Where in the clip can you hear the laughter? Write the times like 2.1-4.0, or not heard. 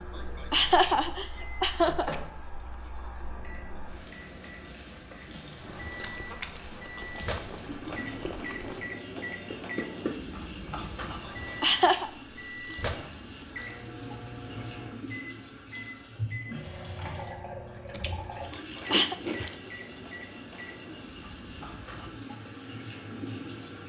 0.1-2.1, 11.2-12.1, 18.6-19.1.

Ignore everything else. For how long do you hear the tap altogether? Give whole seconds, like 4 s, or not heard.
24 s.